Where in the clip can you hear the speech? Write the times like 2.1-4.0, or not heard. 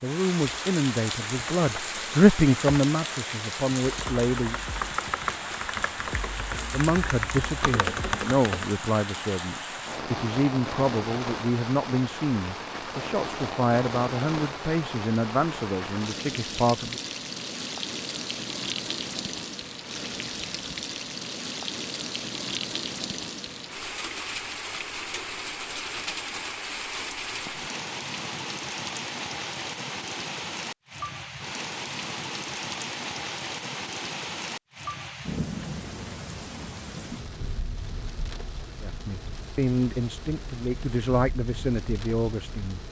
0.0-4.6, 6.7-17.0, 38.8-42.8.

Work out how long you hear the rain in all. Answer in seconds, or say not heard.
43 s.